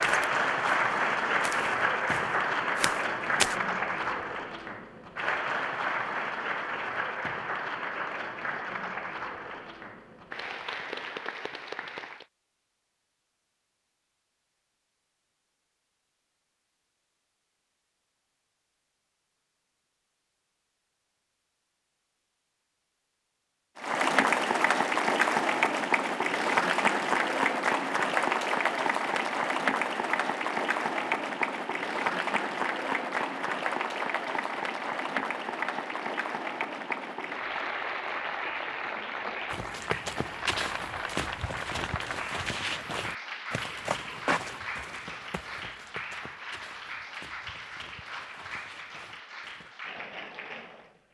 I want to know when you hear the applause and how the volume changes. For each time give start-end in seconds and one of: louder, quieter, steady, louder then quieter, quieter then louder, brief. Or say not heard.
0.0-12.2 quieter
23.8-51.0 quieter.